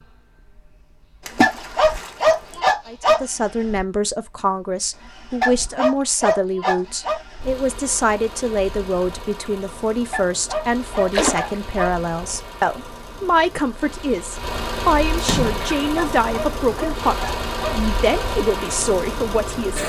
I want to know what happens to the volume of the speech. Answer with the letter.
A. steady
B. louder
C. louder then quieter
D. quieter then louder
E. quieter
A.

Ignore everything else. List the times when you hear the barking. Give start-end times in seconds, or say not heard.
1.4-3.2, 5.4-7.2, 10.1-11.9, 15.9-17.8.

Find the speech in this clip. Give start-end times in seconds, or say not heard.
2.9-19.8.